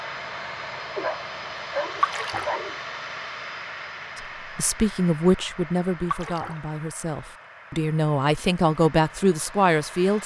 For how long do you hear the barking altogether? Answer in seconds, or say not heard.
2 s.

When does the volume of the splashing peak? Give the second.
2 s.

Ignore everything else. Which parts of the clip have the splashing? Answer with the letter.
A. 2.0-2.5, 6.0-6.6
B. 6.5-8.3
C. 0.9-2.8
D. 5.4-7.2
A.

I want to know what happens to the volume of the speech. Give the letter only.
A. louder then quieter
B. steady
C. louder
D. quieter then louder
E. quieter
D.